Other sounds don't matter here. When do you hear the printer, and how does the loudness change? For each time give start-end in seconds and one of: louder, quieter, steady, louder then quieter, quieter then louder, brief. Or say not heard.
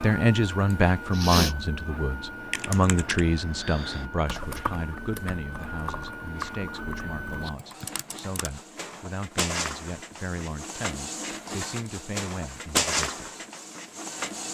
0.0-14.4 louder.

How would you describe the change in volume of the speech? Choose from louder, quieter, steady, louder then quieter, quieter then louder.
quieter.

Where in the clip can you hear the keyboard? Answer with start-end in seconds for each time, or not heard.
2.4-8.6.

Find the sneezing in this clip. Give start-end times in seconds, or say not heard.
0.7-1.6.